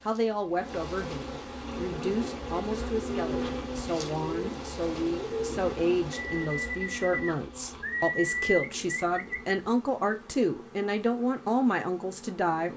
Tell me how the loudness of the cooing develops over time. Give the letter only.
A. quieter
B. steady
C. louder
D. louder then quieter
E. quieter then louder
C.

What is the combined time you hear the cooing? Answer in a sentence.
You can hear the cooing for 8 seconds altogether.